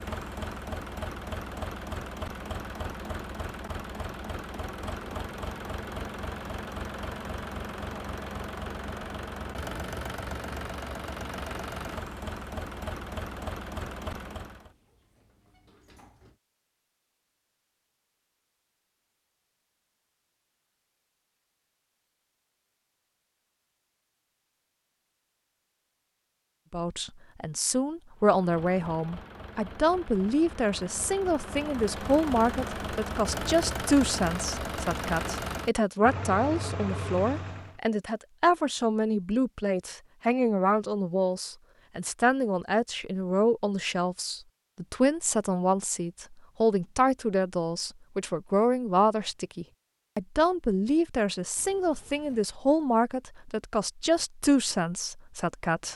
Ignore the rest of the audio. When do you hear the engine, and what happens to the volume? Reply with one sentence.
You can hear the engine from 0.0 to 14.8 s, at a steady volume; and from 28.1 to 37.8 s, getting louder.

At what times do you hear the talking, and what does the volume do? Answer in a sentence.
You can hear the talking from 26.7 to 55.9 s, at a steady volume.